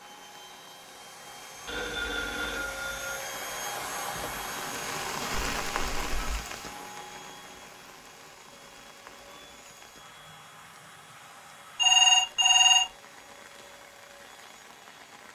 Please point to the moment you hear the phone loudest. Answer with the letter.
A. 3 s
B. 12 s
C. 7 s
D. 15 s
B.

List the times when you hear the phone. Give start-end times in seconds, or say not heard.
1.6-3.2, 5.5-6.2, 11.8-12.9.